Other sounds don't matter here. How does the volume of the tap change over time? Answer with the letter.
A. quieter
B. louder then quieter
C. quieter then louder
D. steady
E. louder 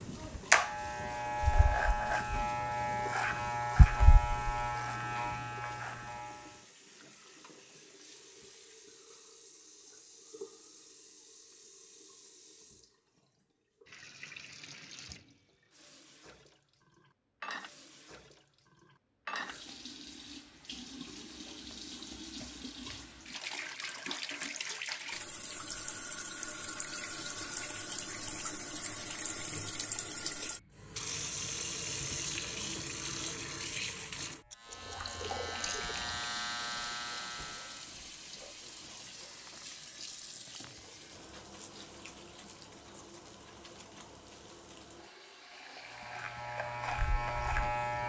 B.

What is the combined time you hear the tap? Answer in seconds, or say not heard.
48 s.